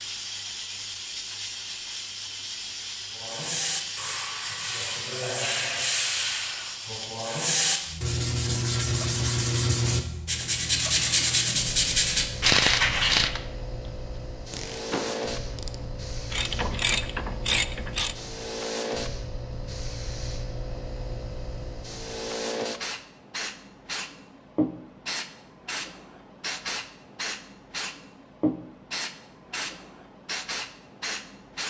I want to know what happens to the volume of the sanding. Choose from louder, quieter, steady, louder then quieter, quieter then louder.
louder.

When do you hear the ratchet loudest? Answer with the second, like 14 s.
13 s.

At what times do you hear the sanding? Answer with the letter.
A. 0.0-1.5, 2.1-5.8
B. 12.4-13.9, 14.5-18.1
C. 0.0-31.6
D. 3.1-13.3
D.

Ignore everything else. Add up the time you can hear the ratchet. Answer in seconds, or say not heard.
5 s.